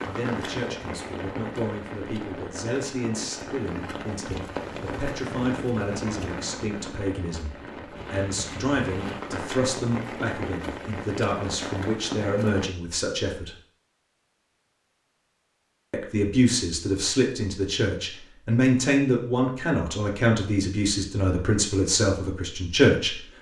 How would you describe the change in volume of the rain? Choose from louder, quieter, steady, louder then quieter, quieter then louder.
steady.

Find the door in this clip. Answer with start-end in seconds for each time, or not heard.
not heard.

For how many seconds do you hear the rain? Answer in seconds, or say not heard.
13 s.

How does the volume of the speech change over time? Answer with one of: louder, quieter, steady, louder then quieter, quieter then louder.
louder.